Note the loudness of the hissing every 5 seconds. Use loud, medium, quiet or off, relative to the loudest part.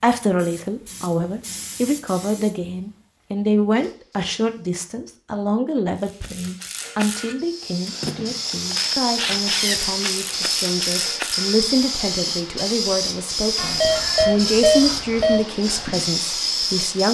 quiet, loud, loud, loud.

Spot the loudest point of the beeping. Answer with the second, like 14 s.
15 s.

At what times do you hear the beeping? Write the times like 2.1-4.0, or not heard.
13.6-15.4.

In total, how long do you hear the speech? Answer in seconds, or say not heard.
17 s.